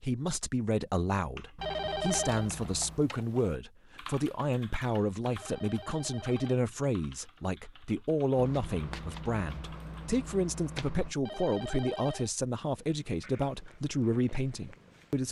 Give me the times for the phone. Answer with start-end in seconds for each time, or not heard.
1.6-2.5, 5.3-6.6, 11.2-12.3.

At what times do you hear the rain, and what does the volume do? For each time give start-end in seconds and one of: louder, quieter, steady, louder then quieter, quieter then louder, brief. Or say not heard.
not heard.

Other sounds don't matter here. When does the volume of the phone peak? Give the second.
2 s.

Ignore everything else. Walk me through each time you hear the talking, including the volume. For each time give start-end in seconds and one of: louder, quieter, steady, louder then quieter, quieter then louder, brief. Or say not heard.
0.0-15.2 steady.